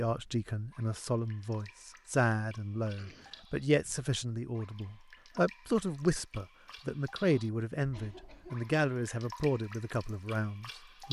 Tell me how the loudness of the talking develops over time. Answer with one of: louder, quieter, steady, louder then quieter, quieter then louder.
steady.